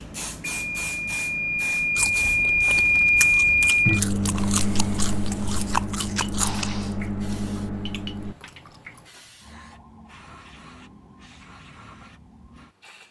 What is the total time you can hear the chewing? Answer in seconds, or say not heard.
7 s.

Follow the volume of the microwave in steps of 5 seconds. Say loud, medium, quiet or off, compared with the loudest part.
loud, medium, off.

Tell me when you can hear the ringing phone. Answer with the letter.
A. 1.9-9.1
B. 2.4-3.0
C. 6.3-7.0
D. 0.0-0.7
C.